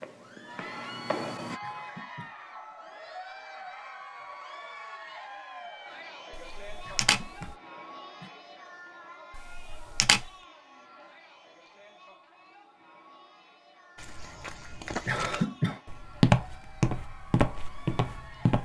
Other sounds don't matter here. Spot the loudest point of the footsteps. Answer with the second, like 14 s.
16 s.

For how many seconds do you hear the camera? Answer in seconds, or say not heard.
2 s.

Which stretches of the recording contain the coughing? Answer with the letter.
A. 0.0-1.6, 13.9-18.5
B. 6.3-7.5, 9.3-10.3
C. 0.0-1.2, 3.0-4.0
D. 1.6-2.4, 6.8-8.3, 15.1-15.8
D.